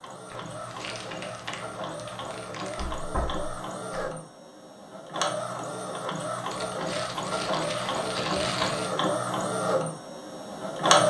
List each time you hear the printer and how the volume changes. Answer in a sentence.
You can hear the printer from 0.0 to 11.0 s, getting louder.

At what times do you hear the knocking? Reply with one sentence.
The knocking can be heard from 2.8 to 4.1 s.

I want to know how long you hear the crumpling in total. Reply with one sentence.
The crumpling can be heard for 5 seconds in total.